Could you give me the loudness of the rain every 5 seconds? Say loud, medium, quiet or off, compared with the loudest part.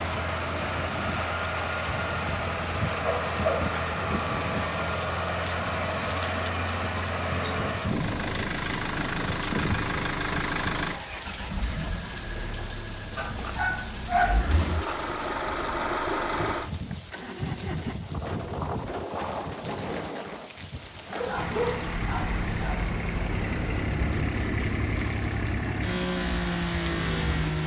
loud, loud, medium, loud, loud, loud.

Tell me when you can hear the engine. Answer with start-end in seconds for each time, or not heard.
0.0-17.9, 21.4-27.6.